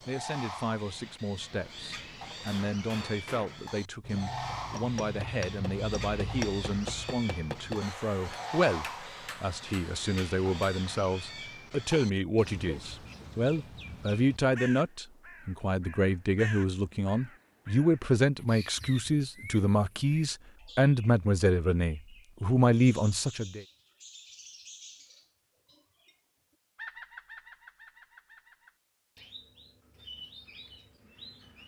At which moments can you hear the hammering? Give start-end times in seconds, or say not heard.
2.3-11.1.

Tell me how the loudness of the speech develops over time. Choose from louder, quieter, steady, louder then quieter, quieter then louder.
louder.